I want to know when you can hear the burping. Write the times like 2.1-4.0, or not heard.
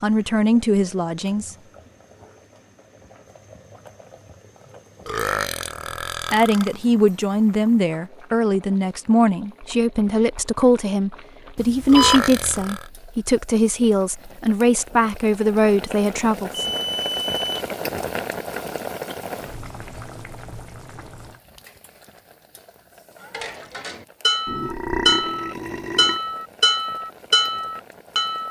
5.0-6.8, 11.8-12.9, 24.4-26.2.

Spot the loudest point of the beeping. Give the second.
12 s.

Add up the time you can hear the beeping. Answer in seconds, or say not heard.
2 s.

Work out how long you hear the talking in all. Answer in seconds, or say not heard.
12 s.